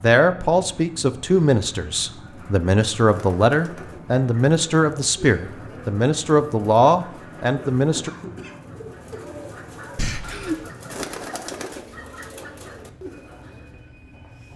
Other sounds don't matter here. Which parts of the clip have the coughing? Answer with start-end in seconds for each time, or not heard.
9.9-10.7.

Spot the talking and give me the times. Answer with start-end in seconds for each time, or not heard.
0.0-8.1.